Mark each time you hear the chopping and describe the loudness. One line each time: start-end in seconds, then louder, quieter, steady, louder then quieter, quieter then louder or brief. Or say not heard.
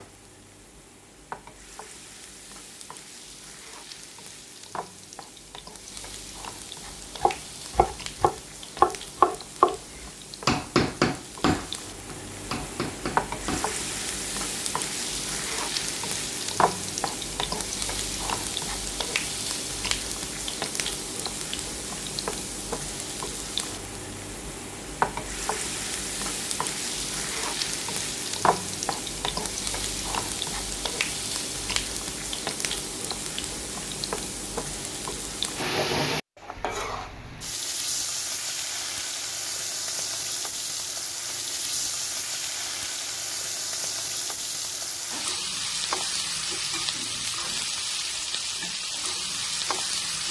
7.2-13.8 louder then quieter.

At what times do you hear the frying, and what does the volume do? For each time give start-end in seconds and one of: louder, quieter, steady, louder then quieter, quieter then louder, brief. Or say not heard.
0.0-50.2 louder.